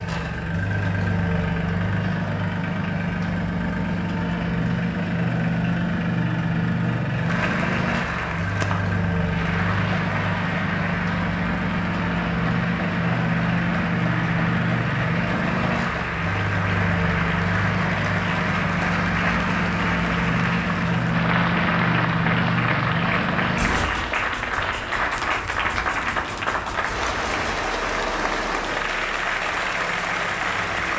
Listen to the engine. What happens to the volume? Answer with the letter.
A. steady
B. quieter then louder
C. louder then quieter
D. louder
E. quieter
E.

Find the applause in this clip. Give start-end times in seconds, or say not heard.
7.2-30.9.